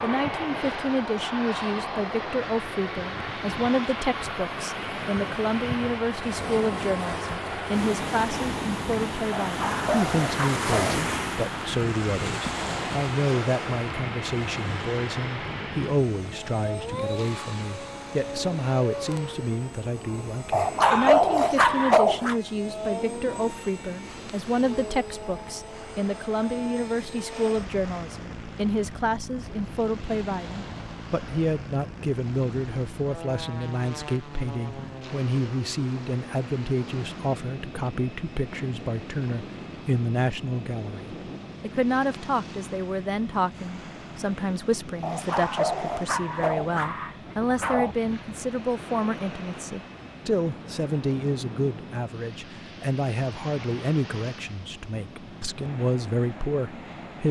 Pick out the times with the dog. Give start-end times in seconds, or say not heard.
9.4-11.0, 20.5-22.4, 45.0-48.0.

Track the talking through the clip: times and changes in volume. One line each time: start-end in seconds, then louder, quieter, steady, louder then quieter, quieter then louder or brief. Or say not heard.
0.0-57.2 steady.